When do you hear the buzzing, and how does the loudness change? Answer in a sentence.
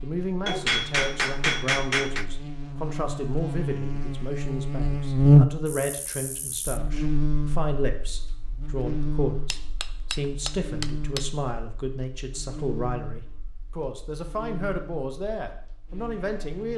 The buzzing can be heard from 0.0 to 16.7 s, getting louder then quieter.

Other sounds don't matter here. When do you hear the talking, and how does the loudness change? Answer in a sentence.
You can hear the talking from 0.0 to 16.7 s, at a steady volume.